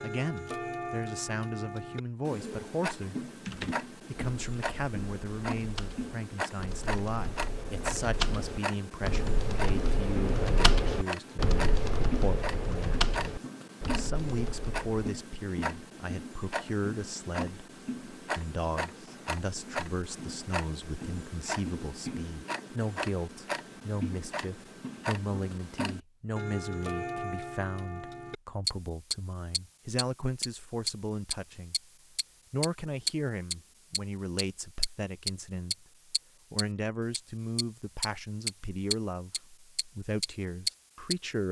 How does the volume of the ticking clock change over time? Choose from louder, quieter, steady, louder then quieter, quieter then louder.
louder.